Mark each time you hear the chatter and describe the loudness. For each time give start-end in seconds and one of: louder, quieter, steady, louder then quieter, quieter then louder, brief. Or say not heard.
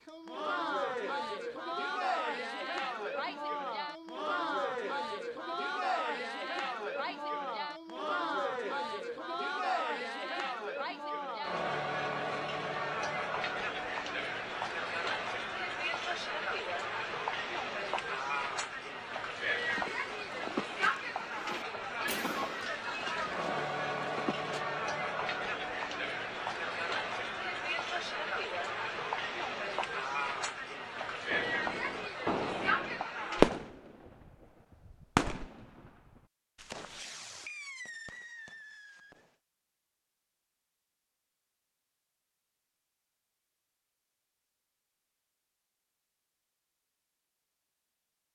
0.1-33.5 steady.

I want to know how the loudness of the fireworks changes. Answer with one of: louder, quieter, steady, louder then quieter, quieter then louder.
louder then quieter.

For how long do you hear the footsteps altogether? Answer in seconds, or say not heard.
5 s.